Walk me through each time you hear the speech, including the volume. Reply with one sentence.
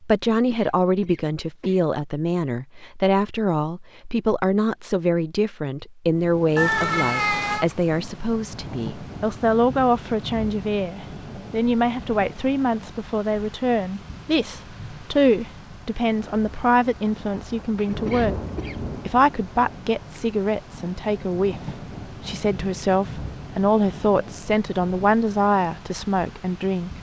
The speech can be heard from 0.0 to 26.9 s, at a steady volume.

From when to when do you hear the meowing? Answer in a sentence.
The meowing can be heard from 6.5 to 7.7 s.